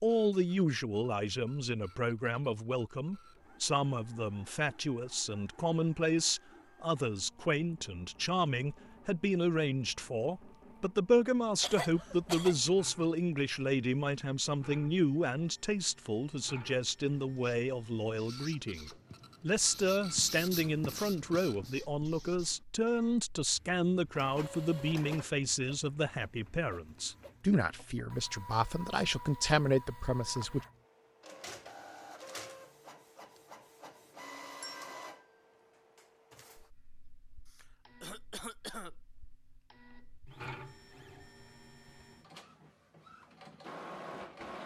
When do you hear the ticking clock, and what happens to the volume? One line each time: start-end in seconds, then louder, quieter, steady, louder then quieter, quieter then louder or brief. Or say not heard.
not heard.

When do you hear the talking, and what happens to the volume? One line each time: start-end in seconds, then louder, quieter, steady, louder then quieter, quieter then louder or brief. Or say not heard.
0.0-30.6 steady.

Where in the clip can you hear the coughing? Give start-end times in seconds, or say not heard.
11.6-12.6, 37.5-39.0.